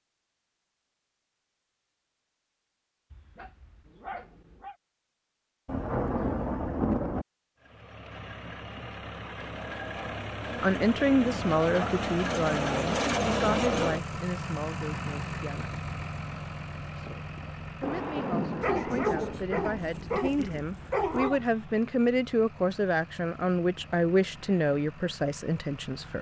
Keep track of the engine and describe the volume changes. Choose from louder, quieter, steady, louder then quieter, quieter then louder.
louder then quieter.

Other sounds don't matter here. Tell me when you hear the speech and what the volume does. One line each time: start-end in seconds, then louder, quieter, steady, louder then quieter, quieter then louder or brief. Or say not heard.
10.6-15.8 quieter
16.9-26.1 louder.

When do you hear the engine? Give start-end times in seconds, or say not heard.
7.5-26.1.